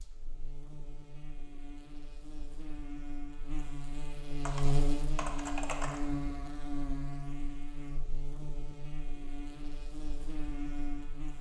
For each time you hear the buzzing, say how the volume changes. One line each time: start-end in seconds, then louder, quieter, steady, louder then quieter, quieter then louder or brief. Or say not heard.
0.0-11.3 louder then quieter.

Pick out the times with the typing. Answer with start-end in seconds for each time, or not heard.
4.5-6.0.